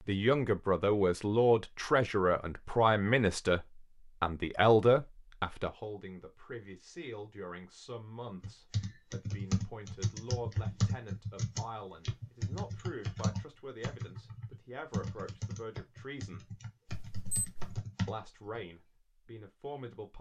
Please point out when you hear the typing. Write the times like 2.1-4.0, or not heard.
8.4-18.6.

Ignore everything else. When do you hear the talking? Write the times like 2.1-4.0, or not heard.
0.1-16.6, 18.1-20.1.